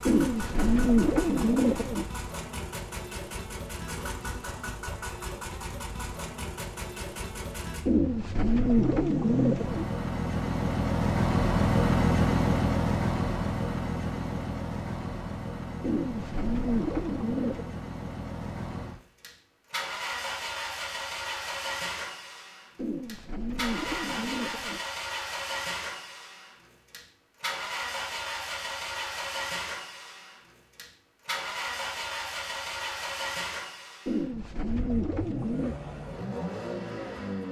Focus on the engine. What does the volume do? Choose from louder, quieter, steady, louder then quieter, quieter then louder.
louder then quieter.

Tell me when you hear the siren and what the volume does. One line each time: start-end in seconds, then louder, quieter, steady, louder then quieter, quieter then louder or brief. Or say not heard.
not heard.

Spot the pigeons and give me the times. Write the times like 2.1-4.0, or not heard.
0.1-2.0, 7.8-9.8, 15.8-17.8, 22.8-24.8, 34.0-35.8.